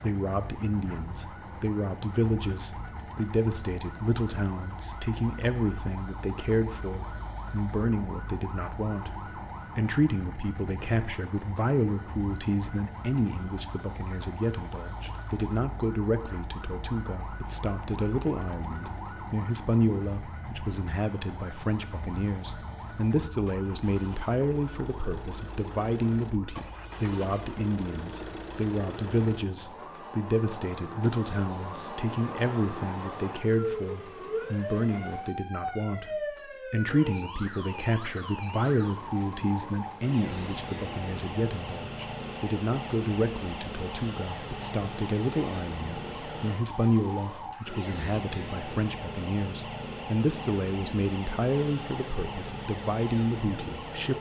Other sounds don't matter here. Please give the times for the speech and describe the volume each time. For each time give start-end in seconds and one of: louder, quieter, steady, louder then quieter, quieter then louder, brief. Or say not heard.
0.0-54.1 steady.